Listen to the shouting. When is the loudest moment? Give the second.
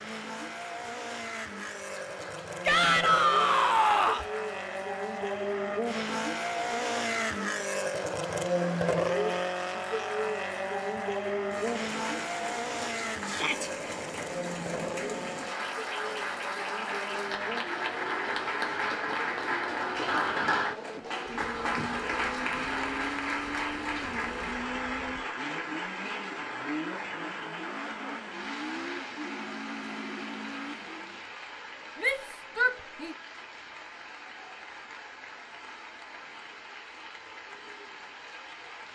3 s.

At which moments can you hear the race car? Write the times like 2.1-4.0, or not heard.
0.0-31.2.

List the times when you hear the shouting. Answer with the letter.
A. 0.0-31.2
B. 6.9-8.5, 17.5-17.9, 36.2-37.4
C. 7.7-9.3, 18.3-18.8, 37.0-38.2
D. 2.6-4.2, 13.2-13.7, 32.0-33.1
D.